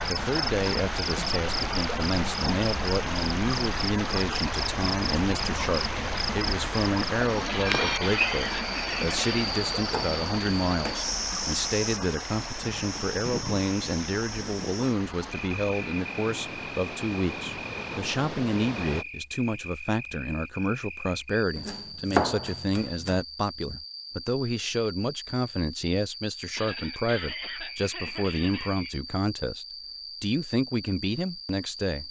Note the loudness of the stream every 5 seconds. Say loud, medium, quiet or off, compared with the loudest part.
loud, loud, medium, medium, off, off, off.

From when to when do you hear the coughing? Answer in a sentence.
The coughing can be heard from 7.5 to 9.6 s and from 26.6 to 28.9 s.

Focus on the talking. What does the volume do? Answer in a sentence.
The loudness of the talking stays about the same.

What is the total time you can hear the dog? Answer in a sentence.
You can't hear the dog here.